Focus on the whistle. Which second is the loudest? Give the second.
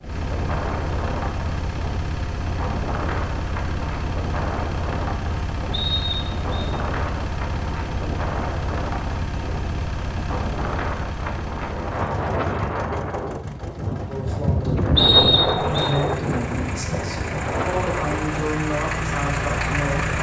15 s.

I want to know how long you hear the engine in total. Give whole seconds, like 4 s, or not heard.
20 s.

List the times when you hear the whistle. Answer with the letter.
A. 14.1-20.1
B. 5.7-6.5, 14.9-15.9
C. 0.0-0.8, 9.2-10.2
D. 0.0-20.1
B.